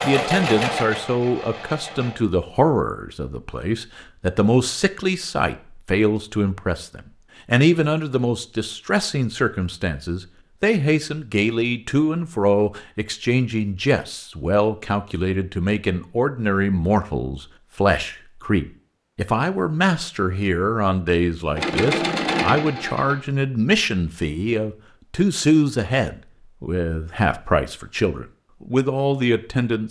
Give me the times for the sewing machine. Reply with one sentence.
The sewing machine can be heard from 0.0 to 2.2 s and from 21.5 to 23.2 s.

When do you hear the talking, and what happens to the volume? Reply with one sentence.
You can hear the talking from 0.0 to 29.8 s, at a steady volume.